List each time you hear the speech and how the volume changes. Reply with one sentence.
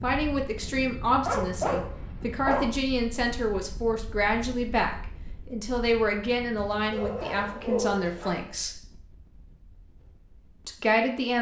The speech can be heard from 0.0 to 8.8 s, at a steady volume; and briefly from 10.7 to 11.3 s.